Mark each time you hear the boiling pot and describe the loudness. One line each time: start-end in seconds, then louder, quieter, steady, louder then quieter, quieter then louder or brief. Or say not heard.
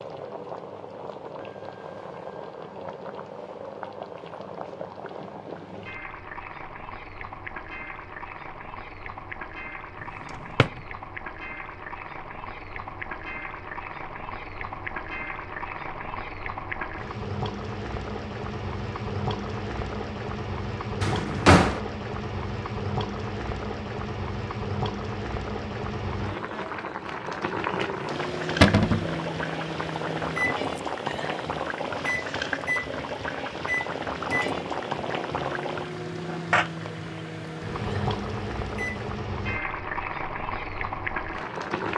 0.0-41.9 louder.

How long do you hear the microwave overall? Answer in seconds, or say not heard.
11 s.